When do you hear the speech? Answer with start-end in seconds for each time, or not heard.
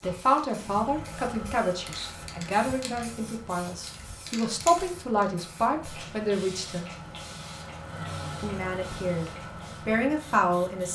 0.0-6.9, 8.4-10.8.